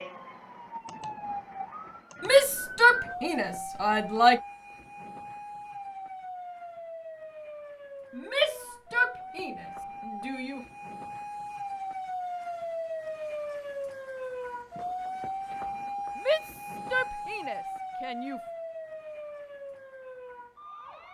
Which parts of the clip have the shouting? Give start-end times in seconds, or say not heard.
2.2-4.4, 8.2-10.7, 16.1-18.4.